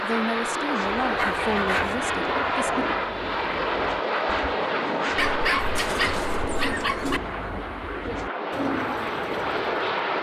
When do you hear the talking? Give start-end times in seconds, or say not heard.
0.0-2.9.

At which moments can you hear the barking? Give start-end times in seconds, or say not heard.
1.1-2.0, 5.2-7.2.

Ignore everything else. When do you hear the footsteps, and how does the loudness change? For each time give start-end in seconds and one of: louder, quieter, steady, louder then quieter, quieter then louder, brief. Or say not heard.
not heard.